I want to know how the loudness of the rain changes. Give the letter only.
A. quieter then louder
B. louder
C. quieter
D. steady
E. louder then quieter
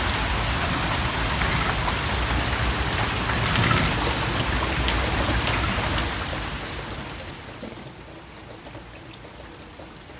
C.